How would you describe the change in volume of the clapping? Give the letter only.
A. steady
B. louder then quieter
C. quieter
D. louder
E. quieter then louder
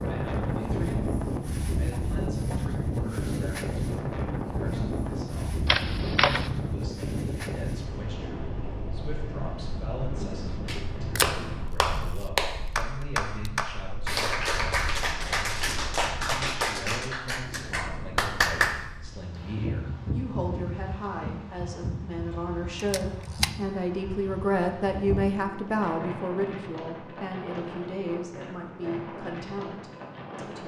C.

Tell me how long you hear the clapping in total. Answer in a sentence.
You can hear the clapping for 8 seconds altogether.